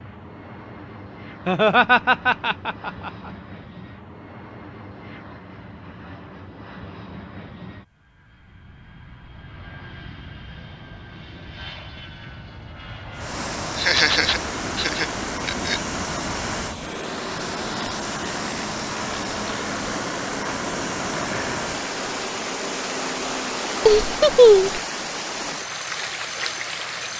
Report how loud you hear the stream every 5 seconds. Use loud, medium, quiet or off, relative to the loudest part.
off, off, loud, loud, loud, loud.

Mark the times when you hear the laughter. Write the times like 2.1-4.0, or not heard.
1.4-3.1, 13.8-15.8, 23.9-24.8.